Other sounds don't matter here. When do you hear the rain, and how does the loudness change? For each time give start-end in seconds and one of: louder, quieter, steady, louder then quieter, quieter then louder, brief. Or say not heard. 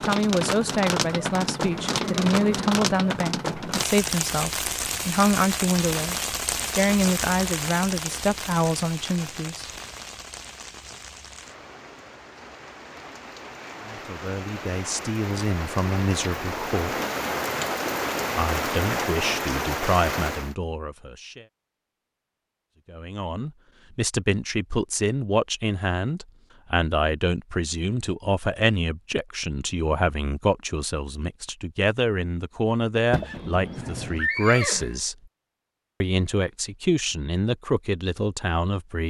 0.0-20.6 quieter then louder.